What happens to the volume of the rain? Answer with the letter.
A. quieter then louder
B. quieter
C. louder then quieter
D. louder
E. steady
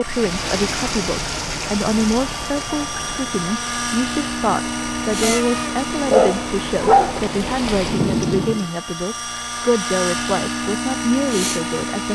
A.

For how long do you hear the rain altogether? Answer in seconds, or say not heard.
9 s.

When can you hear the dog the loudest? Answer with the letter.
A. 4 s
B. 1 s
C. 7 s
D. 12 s
C.